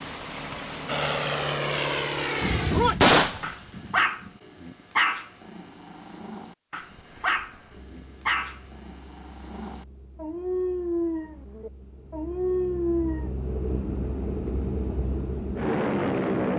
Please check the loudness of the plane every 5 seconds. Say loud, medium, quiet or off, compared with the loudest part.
loud, quiet, medium, loud.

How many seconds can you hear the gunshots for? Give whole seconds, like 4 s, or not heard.
2 s.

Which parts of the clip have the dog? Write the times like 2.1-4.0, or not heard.
3.4-13.3.